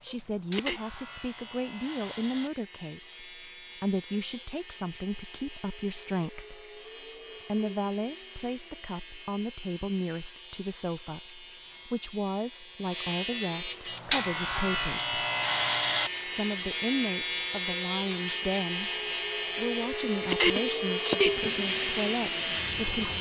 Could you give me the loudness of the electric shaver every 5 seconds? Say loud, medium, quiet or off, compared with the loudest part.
quiet, quiet, loud, loud, loud.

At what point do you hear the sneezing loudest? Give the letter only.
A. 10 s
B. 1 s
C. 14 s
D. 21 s
D.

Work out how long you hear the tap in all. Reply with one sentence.
The tap can be heard for 2 seconds in total.